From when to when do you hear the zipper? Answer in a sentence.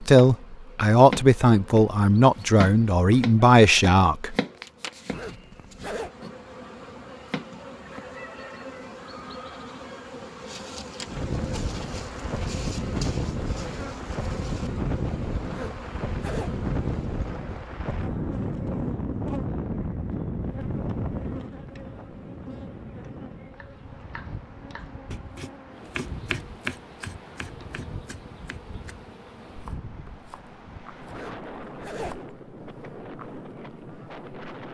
The zipper can be heard from 5.1 to 6.1 s, from 15.5 to 16.6 s and from 31.1 to 32.2 s.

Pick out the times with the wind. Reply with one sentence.
The wind can be heard from 11.1 to 34.6 s.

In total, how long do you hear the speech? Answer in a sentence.
The speech can be heard for 4 seconds in total.